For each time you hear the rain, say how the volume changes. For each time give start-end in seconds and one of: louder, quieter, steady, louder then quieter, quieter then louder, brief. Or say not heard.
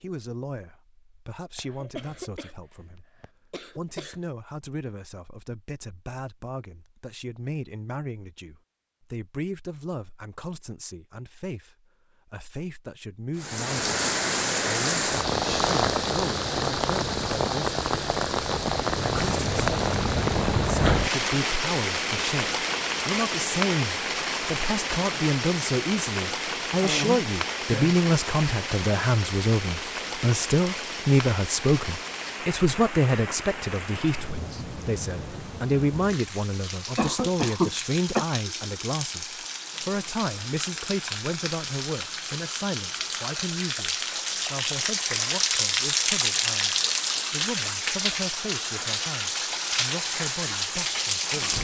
13.3-51.5 quieter then louder.